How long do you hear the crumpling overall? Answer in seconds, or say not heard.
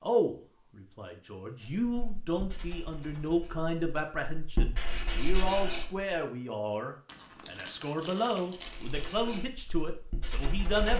2 s.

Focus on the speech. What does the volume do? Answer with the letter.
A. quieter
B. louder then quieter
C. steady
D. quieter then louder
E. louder
C.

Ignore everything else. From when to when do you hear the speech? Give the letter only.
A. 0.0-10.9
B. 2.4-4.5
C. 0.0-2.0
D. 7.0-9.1
A.